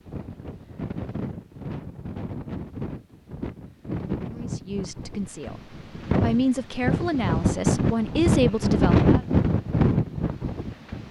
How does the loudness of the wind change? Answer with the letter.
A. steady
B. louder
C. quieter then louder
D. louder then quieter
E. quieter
B.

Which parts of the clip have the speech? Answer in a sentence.
The speech can be heard from 4.2 to 9.2 s.